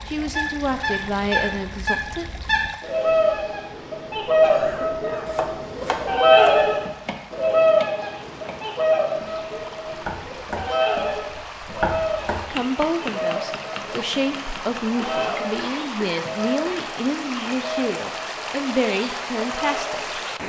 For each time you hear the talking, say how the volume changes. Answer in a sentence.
The talking can be heard briefly from 0.1 to 2.2 s; and from 12.3 to 20.1 s, at a steady volume.